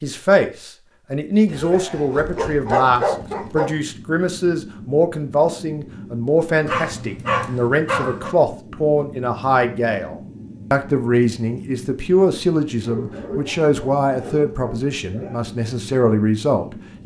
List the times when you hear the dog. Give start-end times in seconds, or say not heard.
1.4-3.7, 6.7-8.3, 12.8-15.4.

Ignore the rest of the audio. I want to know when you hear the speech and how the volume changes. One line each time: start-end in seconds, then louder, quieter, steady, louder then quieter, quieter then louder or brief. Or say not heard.
0.0-17.0 steady.